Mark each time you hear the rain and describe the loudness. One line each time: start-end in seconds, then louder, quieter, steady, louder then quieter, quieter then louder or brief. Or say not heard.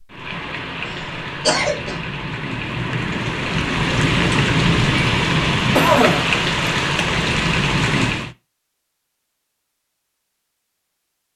0.0-8.3 louder.